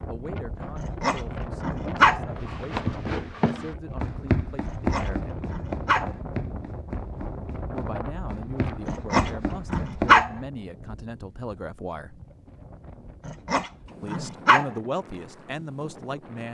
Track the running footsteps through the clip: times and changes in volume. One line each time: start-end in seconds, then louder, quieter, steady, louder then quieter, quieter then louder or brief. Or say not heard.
2.4-10.2 quieter then louder.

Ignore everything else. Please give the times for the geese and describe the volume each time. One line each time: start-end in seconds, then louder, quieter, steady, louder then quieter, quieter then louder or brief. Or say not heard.
not heard.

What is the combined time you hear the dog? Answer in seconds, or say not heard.
6 s.